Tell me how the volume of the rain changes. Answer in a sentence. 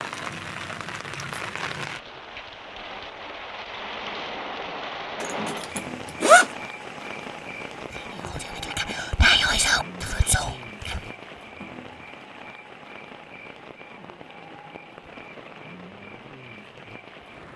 The volume of the rain goes down.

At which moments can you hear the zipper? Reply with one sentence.
You can hear the zipper from 5.2 to 6.5 s.